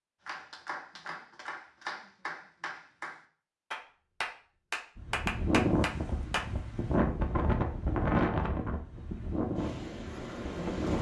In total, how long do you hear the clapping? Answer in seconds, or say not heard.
6 s.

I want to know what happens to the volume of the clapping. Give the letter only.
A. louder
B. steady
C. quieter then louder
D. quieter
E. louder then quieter
A.